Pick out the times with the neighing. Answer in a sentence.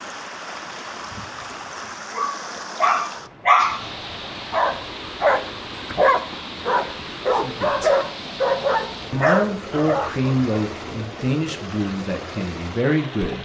You can't hear the neighing here.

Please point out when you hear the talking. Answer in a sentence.
The talking can be heard from 7.3 to 8.0 s and from 9.1 to 13.4 s.